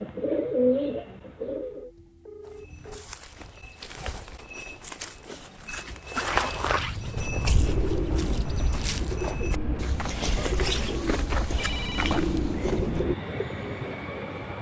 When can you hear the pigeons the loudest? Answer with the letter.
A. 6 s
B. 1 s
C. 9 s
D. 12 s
B.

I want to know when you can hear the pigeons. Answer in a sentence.
The pigeons can be heard from 0.0 to 1.9 s and from 7.2 to 13.6 s.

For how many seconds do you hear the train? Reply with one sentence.
You can hear the train for 2 seconds altogether.